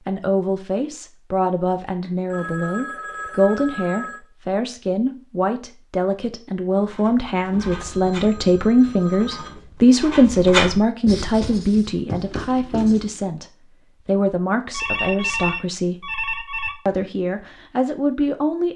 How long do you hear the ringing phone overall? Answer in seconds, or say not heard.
6 s.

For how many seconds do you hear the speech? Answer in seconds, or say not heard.
18 s.